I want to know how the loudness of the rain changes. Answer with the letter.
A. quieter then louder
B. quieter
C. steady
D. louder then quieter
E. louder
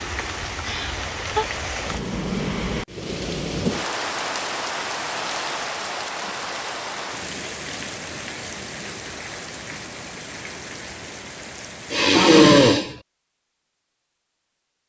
B.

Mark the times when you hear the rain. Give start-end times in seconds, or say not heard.
0.0-12.1.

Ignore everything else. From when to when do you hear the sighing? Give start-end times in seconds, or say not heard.
0.6-1.4, 11.9-12.9.